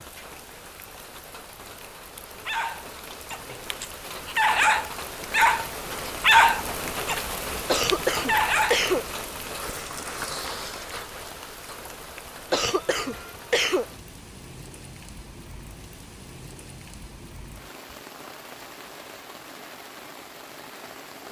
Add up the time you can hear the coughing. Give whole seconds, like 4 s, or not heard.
3 s.